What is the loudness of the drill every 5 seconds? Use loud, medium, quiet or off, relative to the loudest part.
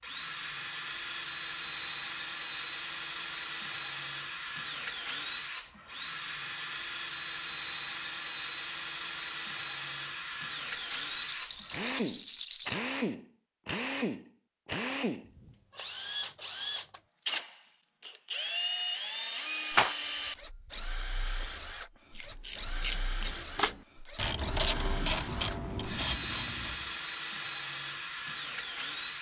loud, loud, loud, loud, medium, loud.